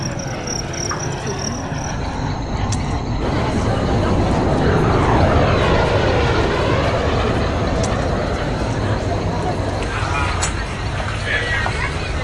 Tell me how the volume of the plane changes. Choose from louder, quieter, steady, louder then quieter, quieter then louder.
louder then quieter.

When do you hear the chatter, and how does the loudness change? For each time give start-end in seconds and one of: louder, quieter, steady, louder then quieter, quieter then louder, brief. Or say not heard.
3.2-12.1 steady.